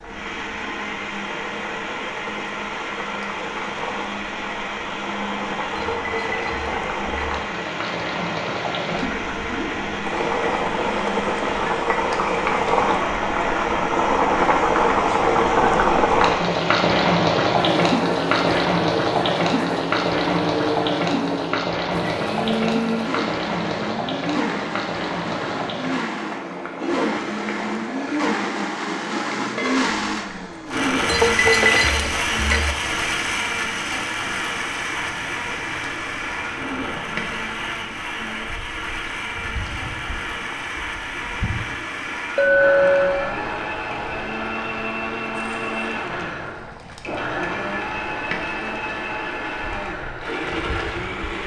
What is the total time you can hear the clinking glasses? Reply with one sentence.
The clinking glasses can be heard for 4 seconds in total.